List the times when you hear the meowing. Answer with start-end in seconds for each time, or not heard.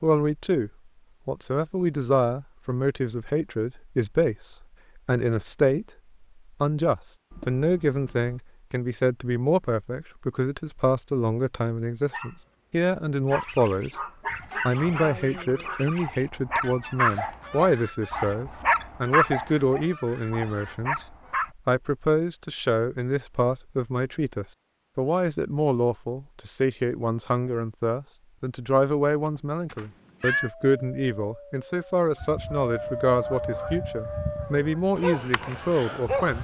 7.3-8.4, 29.8-30.5.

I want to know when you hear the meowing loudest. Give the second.
30 s.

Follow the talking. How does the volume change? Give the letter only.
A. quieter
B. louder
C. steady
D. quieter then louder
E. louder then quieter
C.